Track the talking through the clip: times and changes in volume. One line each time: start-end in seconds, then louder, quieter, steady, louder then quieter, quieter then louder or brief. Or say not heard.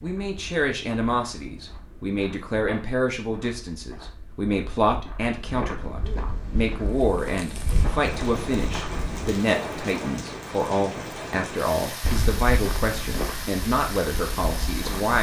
0.0-15.1 steady.